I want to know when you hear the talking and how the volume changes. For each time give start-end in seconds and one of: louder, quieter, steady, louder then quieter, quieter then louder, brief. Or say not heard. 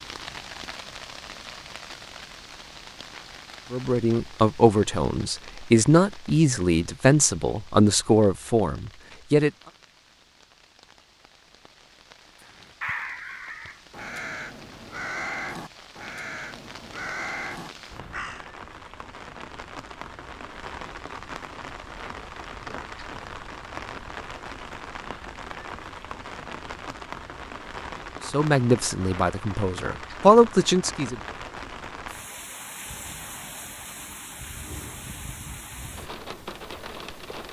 3.7-9.5 steady
28.2-31.1 brief.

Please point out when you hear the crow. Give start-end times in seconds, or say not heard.
12.4-18.4.